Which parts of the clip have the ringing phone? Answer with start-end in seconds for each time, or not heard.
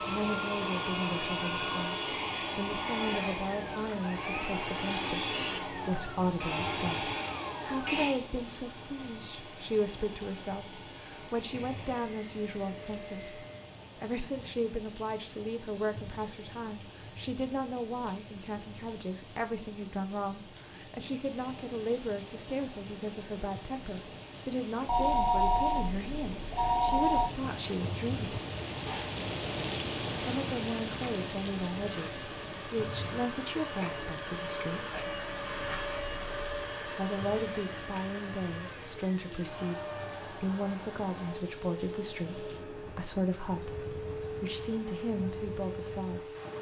24.9-27.3.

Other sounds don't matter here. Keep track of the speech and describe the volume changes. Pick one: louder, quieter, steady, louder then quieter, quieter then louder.
steady.